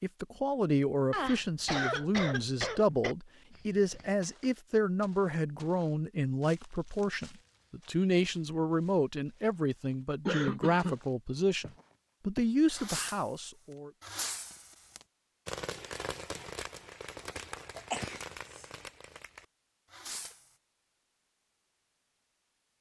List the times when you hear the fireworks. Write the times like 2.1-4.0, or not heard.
12.7-13.3, 14.0-20.5.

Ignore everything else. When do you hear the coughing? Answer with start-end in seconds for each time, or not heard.
1.1-3.1, 10.2-10.9, 17.8-18.6.